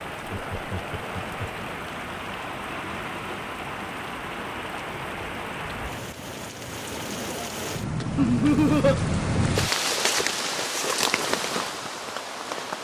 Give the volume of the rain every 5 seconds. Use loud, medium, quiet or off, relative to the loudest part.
medium, loud, loud.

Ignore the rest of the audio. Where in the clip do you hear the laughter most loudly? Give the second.
9 s.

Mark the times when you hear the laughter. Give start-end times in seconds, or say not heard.
0.2-1.4, 8.2-9.0.